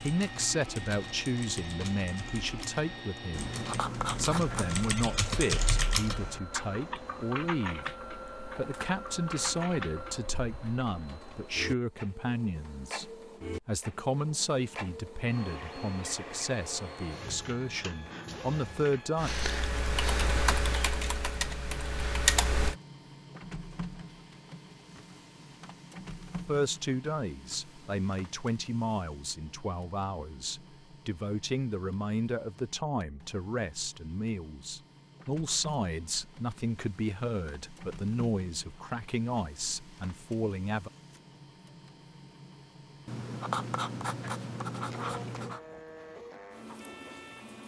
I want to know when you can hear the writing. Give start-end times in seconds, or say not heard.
3.3-5.0, 43.0-45.6.